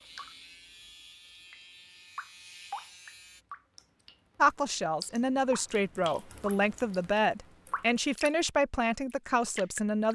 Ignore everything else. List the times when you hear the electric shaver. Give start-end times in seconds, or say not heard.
0.0-3.5.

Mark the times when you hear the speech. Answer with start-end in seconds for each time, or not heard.
4.4-10.0.